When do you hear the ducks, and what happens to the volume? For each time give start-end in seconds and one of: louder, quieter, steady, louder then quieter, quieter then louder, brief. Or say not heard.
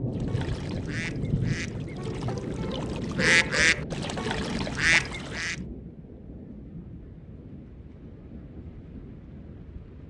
0.1-5.5 louder.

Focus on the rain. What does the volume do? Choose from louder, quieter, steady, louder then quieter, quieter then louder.
quieter.